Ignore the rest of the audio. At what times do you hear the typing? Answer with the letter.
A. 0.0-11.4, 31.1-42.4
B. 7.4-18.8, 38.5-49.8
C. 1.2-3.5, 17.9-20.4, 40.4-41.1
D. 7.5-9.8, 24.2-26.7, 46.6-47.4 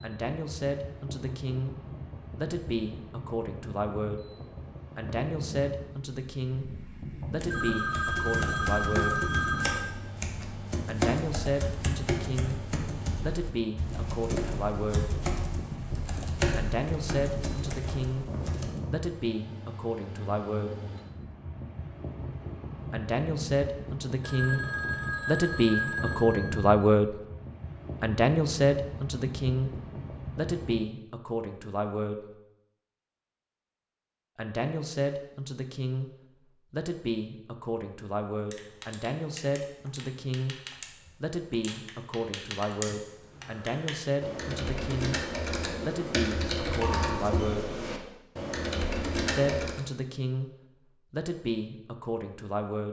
B.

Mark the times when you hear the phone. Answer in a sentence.
You can hear the phone from 7.5 to 9.8 s, from 24.2 to 26.7 s and from 46.6 to 47.4 s.